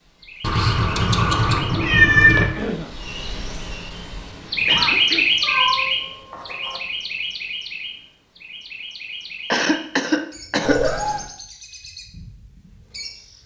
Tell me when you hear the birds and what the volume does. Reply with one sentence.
The birds can be heard from 0.0 to 13.4 s, getting louder then quieter.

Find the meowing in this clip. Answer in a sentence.
The meowing can be heard from 0.4 to 2.5 s, from 5.4 to 6.8 s and from 10.6 to 11.3 s.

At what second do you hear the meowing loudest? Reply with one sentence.
The volume of the meowing peaks at 2 seconds.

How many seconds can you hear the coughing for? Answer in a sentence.
The coughing can be heard for 3 seconds in total.